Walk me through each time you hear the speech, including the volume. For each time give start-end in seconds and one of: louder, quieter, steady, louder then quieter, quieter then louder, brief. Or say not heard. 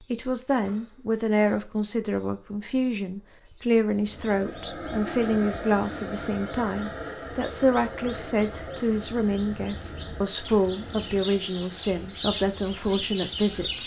0.0-13.8 steady.